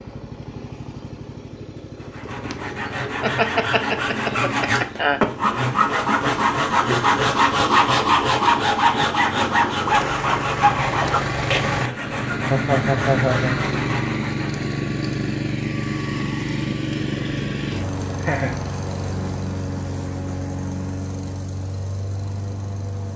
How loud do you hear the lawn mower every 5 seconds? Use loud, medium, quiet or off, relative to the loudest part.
medium, medium, loud, loud, medium.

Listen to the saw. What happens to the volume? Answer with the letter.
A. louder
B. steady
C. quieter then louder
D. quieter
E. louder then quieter
E.